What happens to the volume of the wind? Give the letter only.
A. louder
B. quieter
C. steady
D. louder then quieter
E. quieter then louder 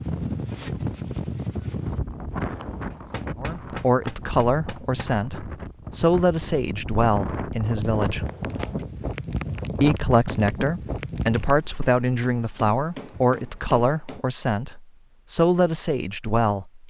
E.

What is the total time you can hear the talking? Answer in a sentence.
The talking can be heard for 12 seconds in total.